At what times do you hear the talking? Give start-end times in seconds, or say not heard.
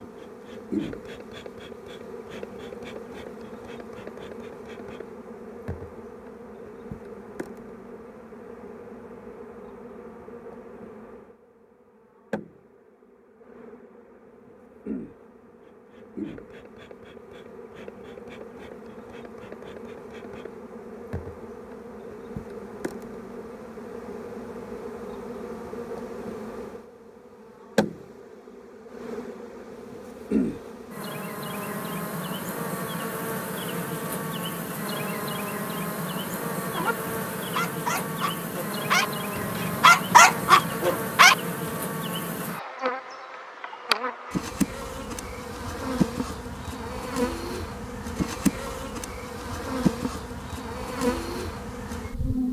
not heard.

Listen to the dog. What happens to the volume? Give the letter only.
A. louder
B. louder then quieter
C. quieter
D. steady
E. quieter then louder
A.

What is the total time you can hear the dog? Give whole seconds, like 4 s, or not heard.
5 s.